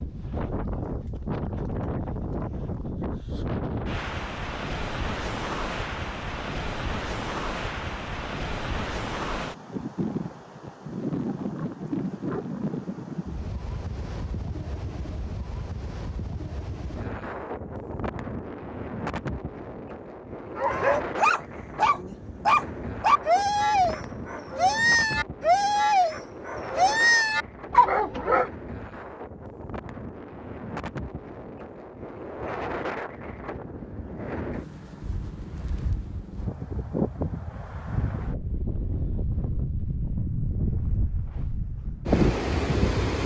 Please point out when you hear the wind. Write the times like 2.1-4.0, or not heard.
0.0-43.2.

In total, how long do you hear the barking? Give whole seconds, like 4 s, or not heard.
8 s.